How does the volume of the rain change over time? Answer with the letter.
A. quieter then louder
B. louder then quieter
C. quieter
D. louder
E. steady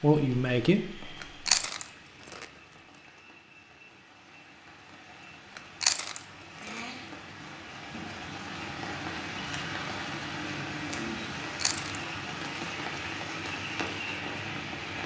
D.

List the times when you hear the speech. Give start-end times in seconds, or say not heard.
0.0-1.1.